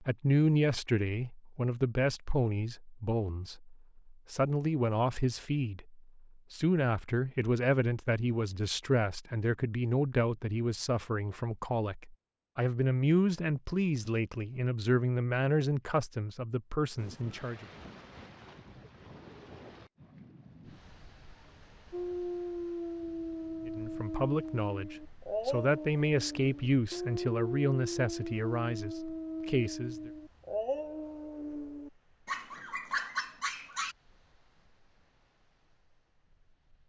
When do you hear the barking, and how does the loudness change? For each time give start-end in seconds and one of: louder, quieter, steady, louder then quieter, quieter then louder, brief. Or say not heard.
21.9-34.0 steady.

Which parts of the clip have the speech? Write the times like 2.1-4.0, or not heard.
0.0-17.6, 23.6-30.1.